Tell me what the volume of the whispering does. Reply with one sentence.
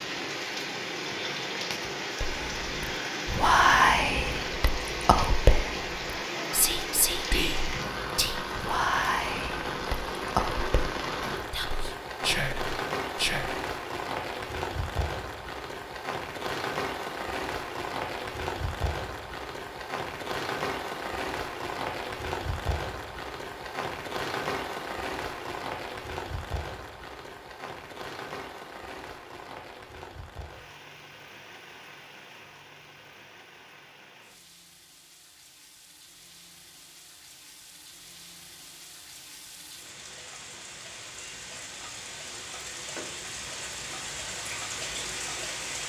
The loudness of the whispering goes down.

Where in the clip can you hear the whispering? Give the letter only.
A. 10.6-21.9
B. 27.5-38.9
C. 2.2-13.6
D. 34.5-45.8
C.